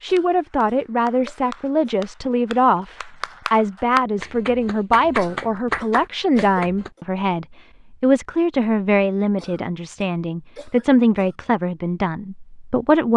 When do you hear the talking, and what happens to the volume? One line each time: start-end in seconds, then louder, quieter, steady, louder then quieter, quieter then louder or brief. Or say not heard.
0.0-13.1 steady.